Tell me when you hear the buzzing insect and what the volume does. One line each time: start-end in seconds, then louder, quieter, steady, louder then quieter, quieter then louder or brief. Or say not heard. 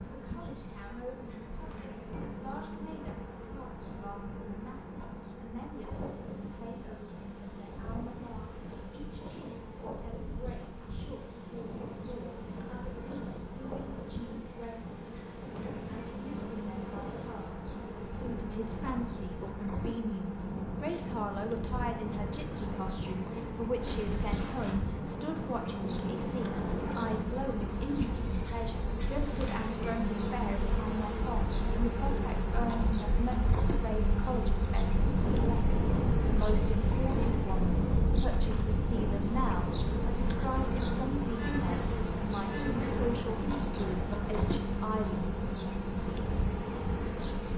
0.0-47.5 louder.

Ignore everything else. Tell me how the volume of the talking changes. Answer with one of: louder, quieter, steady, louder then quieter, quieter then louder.
louder.